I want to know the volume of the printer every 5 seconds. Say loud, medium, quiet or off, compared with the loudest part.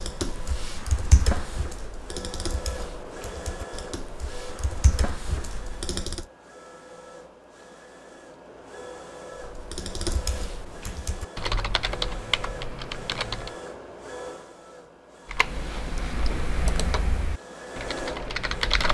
loud, medium, loud, loud.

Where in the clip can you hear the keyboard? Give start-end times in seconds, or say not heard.
0.0-6.2, 9.3-13.6, 15.2-18.8.